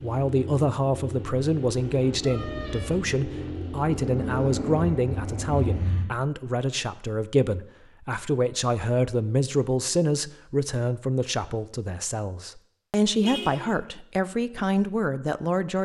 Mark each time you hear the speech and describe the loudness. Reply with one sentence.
The speech can be heard from 0.0 to 15.8 s, at a steady volume.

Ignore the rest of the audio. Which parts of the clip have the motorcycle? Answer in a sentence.
You can hear the motorcycle from 0.0 to 6.1 s.